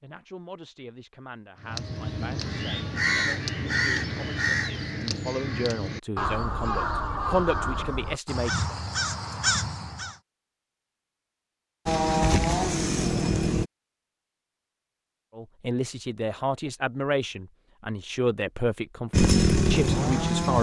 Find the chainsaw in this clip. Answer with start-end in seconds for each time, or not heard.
11.8-13.7, 19.1-20.5.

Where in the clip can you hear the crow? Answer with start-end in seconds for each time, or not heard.
1.6-10.2.